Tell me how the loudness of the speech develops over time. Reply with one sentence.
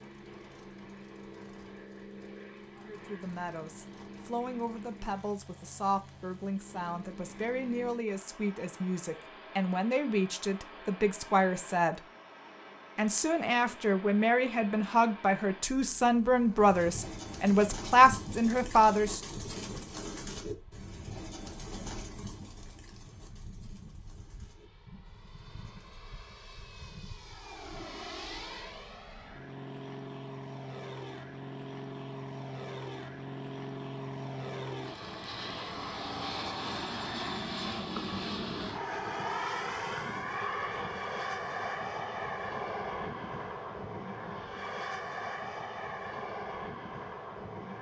The volume of the speech goes up.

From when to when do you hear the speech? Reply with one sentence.
You can hear the speech from 2.8 to 12.0 s and from 12.9 to 19.2 s.